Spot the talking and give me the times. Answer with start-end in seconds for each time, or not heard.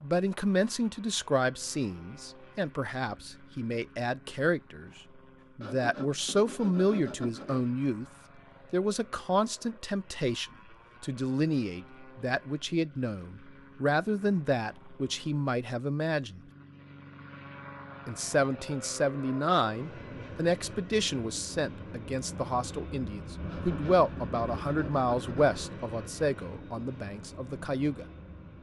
0.0-8.1, 8.7-16.4, 18.1-28.1.